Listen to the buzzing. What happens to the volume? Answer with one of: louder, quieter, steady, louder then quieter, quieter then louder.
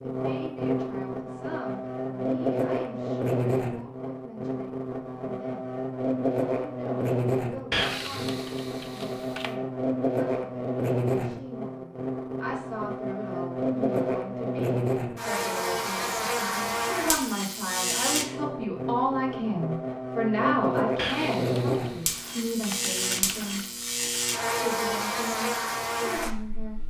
steady.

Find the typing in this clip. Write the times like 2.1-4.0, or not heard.
7.7-9.5, 20.9-23.6.